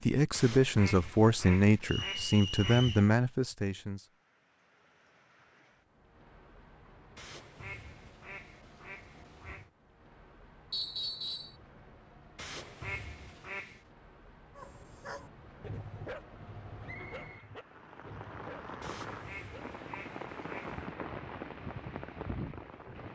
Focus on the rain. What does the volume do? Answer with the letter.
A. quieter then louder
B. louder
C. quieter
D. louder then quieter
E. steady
B.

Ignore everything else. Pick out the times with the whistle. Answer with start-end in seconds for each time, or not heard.
1.9-3.1, 10.7-11.6, 16.9-17.5.